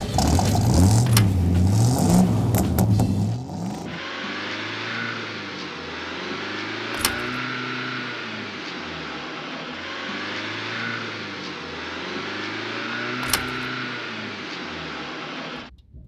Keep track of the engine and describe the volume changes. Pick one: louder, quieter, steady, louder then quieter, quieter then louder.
quieter.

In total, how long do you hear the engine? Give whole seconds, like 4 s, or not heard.
16 s.